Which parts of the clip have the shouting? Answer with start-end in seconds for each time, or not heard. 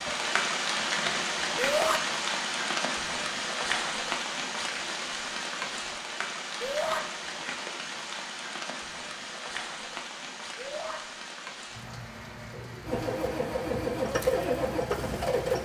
1.6-2.0, 6.6-7.0, 10.6-11.0.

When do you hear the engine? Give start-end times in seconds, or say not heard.
12.8-15.6.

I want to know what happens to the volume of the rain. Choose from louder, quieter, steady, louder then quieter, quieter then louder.
quieter.